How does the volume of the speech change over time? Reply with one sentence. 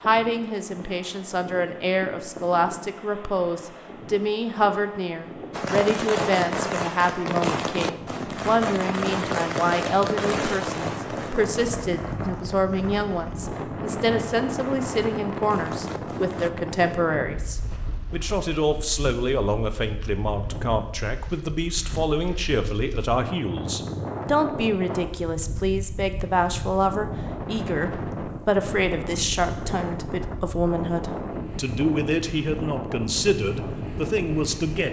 The loudness of the speech stays about the same.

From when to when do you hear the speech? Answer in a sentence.
You can hear the speech from 0.0 to 34.8 s.